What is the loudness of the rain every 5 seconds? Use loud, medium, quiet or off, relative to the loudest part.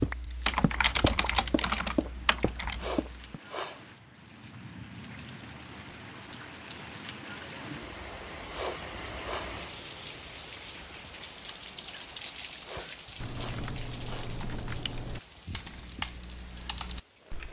medium, loud, loud, medium.